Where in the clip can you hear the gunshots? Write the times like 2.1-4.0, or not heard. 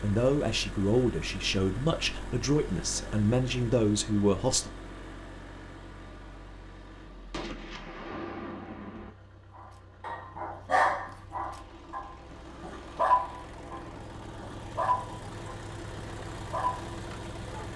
7.3-9.1.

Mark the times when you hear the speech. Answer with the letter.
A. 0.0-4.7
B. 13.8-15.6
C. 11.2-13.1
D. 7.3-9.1
A.